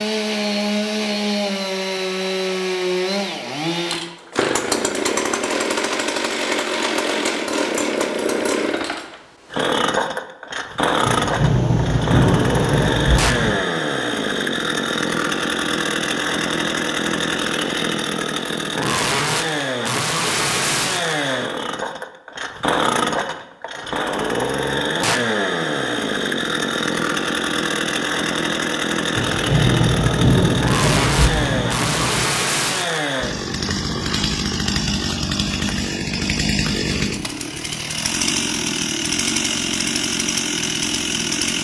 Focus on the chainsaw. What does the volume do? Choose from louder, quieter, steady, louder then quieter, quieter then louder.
steady.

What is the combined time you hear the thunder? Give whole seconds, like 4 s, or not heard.
6 s.